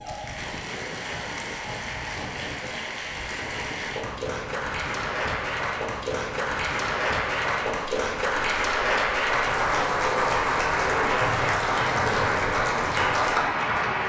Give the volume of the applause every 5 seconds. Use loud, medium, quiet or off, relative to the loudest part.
medium, loud, loud.